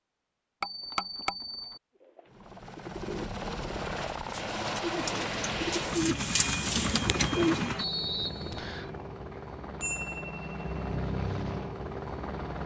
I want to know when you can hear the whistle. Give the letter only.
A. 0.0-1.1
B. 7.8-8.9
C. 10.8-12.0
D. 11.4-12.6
B.